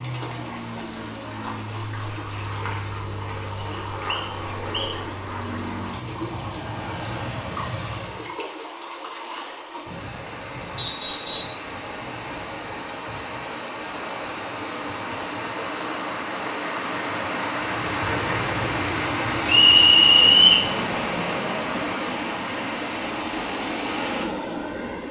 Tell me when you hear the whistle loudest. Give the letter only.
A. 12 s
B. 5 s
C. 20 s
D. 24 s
C.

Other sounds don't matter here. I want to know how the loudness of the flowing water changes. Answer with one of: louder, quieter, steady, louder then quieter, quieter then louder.
louder.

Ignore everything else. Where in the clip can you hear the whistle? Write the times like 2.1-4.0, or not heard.
3.7-5.0, 10.8-11.6, 19.4-20.7.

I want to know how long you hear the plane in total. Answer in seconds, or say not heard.
16 s.